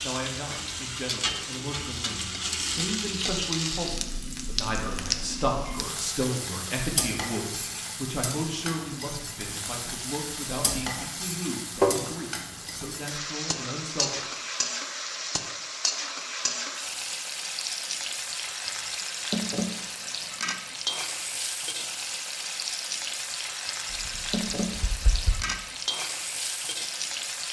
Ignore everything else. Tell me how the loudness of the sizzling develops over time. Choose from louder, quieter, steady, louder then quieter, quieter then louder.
steady.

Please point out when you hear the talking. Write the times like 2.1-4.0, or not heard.
0.0-14.4.